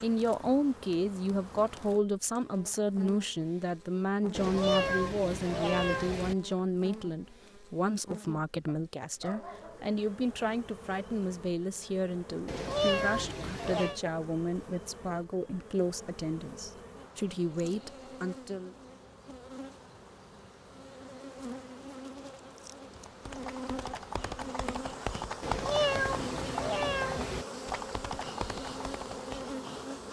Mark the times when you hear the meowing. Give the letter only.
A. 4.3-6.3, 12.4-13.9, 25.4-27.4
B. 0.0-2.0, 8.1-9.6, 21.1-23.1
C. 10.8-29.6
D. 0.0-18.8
A.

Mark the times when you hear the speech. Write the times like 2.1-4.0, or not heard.
0.0-18.8.